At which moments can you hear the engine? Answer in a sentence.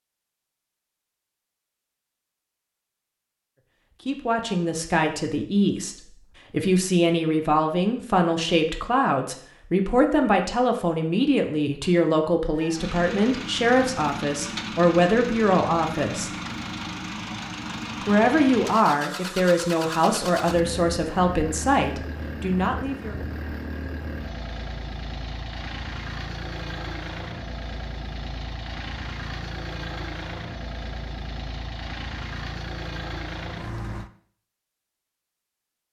You can hear the engine from 12.6 to 34.1 s.